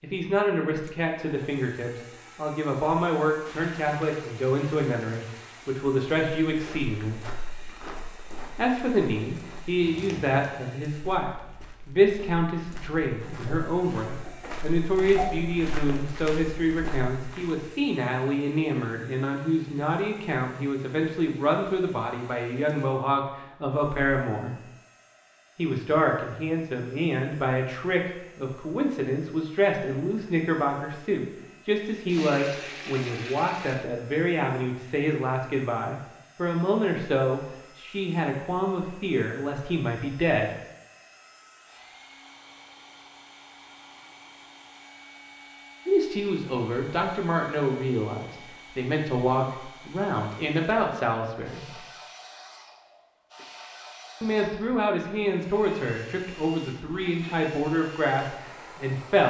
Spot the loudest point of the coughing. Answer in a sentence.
The loudest moment of the coughing is at 15 seconds.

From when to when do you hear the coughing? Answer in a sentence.
The coughing can be heard from 13.4 to 15.4 s.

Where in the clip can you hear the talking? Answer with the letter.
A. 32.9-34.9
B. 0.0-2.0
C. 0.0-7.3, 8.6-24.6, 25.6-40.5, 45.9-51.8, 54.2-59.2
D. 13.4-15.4
C.